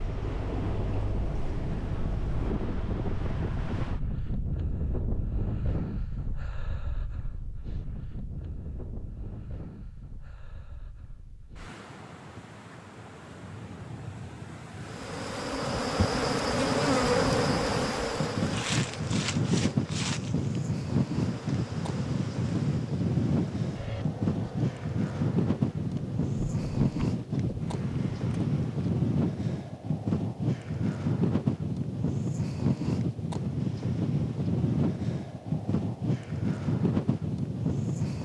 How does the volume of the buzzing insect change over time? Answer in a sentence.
The loudness of the buzzing insect goes down.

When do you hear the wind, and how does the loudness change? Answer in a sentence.
The wind can be heard from 0.0 to 38.2 s, getting quieter then louder.